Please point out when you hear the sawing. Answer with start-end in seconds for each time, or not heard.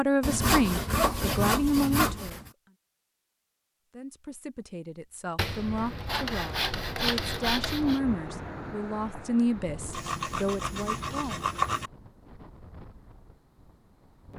0.2-2.5, 5.3-8.0, 9.9-11.9.